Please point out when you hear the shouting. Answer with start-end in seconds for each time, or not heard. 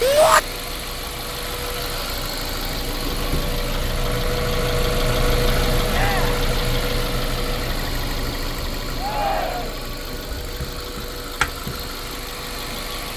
0.0-0.4, 5.9-6.4, 8.9-9.8.